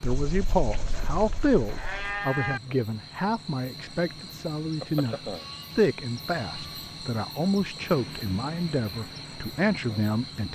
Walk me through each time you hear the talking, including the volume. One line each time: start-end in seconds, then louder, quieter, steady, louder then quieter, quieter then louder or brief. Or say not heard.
0.0-10.5 steady.